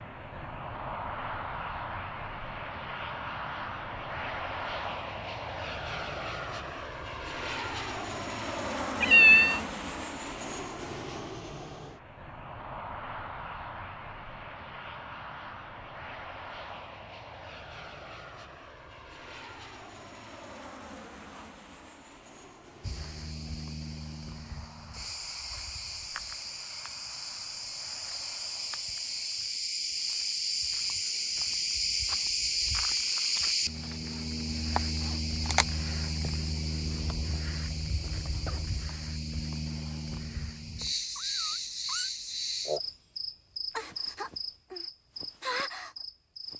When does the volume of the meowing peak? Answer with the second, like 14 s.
9 s.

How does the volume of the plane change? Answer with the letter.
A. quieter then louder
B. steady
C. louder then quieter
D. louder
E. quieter
E.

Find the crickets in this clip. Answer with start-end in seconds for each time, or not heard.
22.8-46.5.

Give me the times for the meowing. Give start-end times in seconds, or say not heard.
9.0-9.6, 41.1-42.1.